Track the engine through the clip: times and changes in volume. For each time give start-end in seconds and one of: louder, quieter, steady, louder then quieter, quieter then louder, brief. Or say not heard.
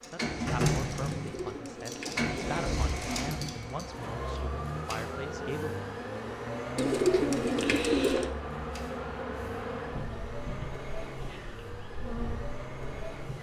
0.0-13.3 quieter.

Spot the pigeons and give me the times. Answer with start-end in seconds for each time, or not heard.
1.1-3.1, 6.8-8.3.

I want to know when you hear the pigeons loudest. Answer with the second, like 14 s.
7 s.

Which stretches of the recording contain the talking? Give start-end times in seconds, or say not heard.
0.0-5.8.